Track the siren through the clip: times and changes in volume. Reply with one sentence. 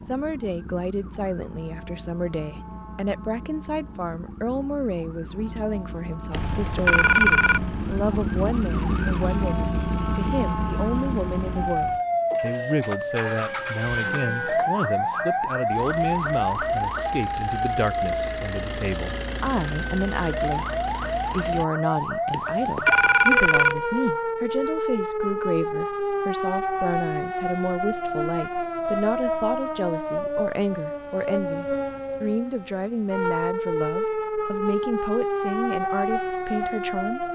You can hear the siren from 0.0 to 37.2 s, getting louder.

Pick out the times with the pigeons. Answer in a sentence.
The pigeons can't be heard in this clip.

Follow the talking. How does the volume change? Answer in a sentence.
The volume of the talking stays about the same.